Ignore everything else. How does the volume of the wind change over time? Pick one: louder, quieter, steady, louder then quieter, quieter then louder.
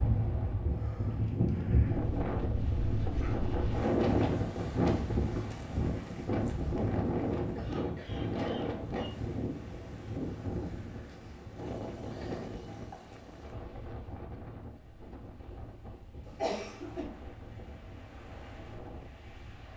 quieter.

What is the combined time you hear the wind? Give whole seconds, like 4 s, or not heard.
20 s.